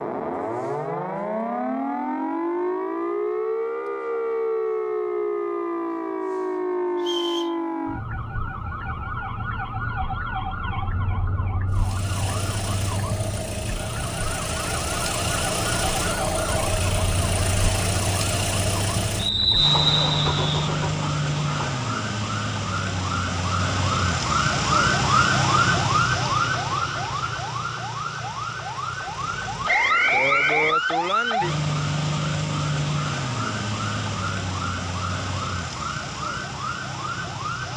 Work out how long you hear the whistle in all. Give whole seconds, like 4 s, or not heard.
3 s.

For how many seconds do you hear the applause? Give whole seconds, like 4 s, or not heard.
not heard.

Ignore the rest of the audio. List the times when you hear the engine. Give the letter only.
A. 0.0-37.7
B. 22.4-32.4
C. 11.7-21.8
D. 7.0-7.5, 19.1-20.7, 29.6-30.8
C.